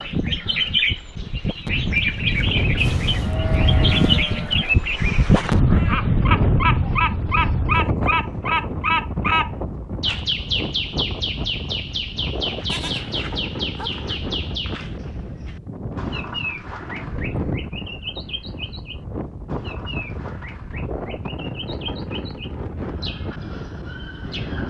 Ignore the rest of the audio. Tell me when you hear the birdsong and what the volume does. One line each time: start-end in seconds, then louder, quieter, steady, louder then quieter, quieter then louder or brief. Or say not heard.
0.0-24.6 quieter.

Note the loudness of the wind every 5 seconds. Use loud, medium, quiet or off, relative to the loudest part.
loud, loud, medium, medium, medium.